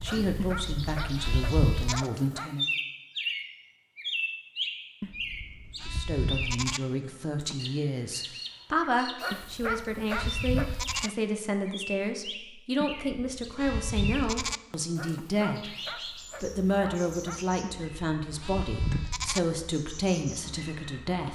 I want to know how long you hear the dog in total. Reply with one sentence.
The dog can be heard for 7 seconds in total.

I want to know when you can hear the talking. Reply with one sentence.
You can hear the talking from 0.0 to 2.6 s, from 5.8 to 15.7 s and from 16.4 to 21.3 s.